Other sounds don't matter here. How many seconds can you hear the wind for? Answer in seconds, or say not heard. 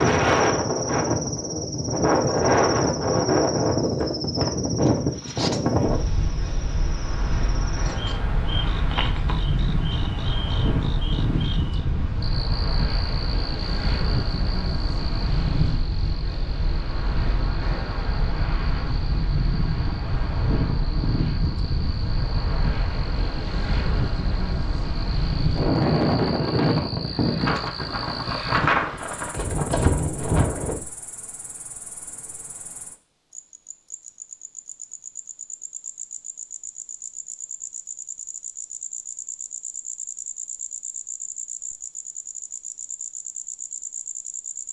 31 s.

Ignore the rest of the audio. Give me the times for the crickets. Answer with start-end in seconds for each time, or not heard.
0.0-44.6.